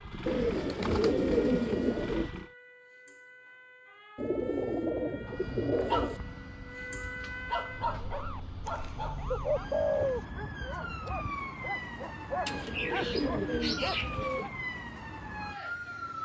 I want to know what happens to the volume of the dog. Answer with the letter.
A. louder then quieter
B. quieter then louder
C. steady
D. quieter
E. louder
B.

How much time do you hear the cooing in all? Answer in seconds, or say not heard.
8 s.